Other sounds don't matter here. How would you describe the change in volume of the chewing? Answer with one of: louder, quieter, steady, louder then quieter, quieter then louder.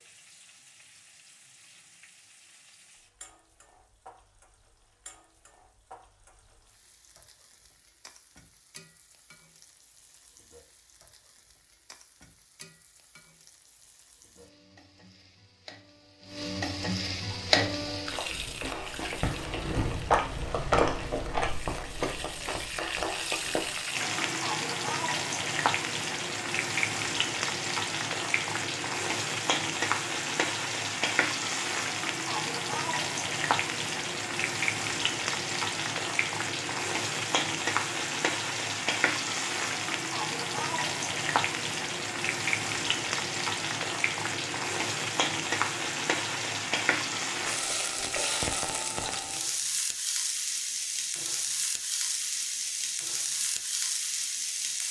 louder then quieter.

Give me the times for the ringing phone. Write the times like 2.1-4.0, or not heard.
not heard.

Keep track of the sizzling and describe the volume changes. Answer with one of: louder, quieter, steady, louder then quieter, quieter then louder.
louder.